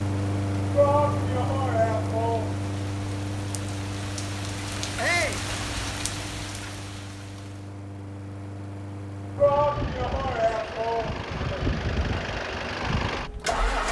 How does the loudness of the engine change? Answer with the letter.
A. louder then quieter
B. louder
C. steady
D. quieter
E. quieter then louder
E.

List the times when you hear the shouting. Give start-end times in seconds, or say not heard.
0.8-2.5, 5.0-5.5, 9.3-11.6.